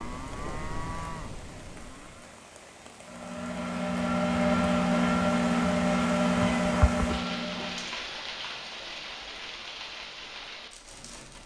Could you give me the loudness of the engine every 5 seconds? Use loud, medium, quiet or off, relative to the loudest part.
loud, loud, off.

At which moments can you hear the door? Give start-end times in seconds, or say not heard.
not heard.